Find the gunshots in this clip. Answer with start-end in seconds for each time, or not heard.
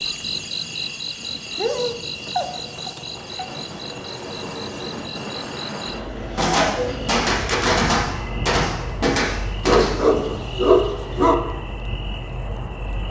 6.3-10.2.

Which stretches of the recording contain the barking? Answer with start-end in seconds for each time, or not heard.
1.6-3.5, 9.7-11.3.